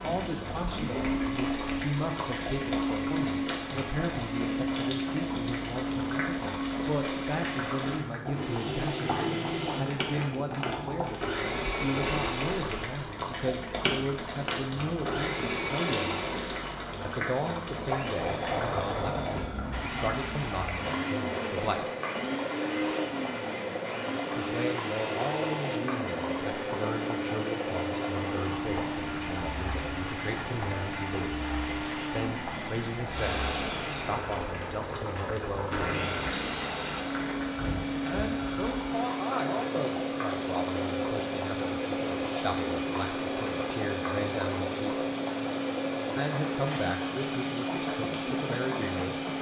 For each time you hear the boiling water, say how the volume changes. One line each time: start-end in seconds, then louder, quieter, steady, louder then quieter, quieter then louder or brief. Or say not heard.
0.0-49.3 steady.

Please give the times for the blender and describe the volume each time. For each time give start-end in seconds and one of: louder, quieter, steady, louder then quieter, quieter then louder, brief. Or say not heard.
0.0-49.3 steady.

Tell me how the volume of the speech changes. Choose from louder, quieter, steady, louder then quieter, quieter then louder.
steady.